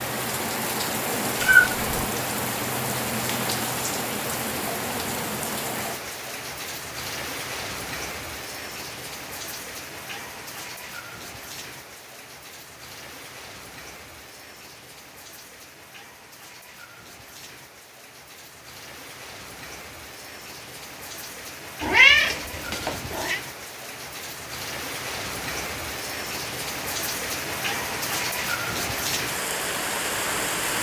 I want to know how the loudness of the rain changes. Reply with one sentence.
The loudness of the rain goes down, then up.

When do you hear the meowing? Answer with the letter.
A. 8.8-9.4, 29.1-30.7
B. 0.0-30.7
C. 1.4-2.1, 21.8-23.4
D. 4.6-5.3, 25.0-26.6
C.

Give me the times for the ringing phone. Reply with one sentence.
You can't hear the ringing phone here.